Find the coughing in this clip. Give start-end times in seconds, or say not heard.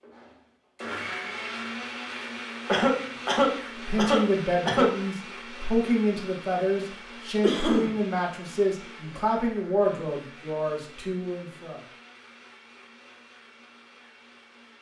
2.6-5.0, 7.4-8.0.